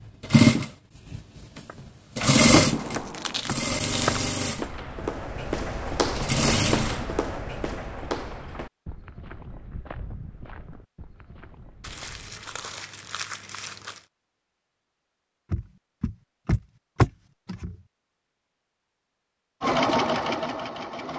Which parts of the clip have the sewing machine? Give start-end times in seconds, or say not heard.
0.1-4.7, 6.2-7.1, 19.6-21.1.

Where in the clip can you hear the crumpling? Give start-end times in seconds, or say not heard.
2.8-4.2, 11.8-14.1.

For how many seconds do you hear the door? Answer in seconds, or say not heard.
3 s.